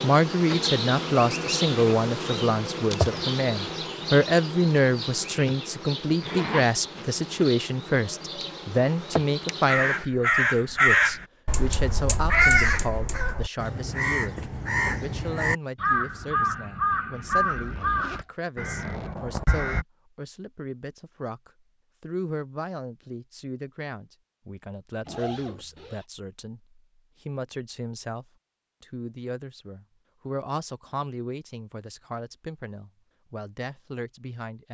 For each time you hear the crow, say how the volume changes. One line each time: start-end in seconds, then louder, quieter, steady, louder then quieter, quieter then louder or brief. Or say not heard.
9.7-19.9 quieter.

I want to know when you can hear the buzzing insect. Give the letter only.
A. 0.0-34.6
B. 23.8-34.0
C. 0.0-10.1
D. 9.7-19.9
C.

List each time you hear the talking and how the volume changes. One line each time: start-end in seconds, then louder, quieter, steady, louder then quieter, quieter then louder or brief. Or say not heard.
0.0-34.6 quieter.